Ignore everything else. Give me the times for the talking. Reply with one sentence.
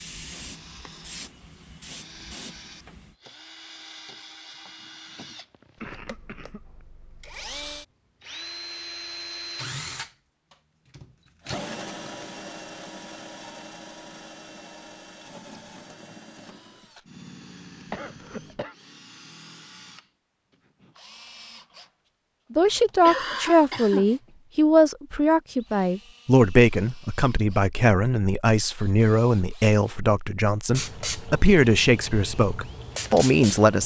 The talking can be heard from 22.5 to 33.8 s.